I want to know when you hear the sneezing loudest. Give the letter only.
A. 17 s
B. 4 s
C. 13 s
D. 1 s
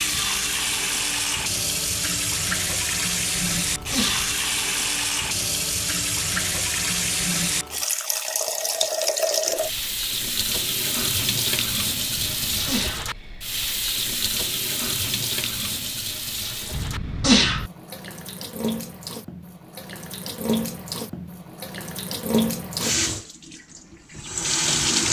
A.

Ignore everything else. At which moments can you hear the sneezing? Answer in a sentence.
You can hear the sneezing from 3.5 to 4.3 s, from 12.2 to 13.1 s and from 16.7 to 17.7 s.